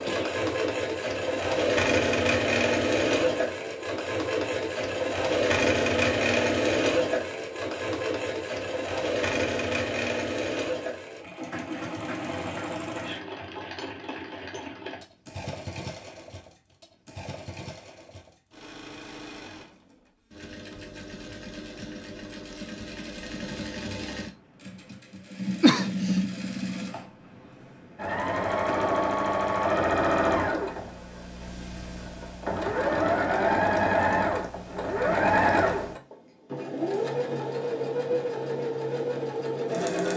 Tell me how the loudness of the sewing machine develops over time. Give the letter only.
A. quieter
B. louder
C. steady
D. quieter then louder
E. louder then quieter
D.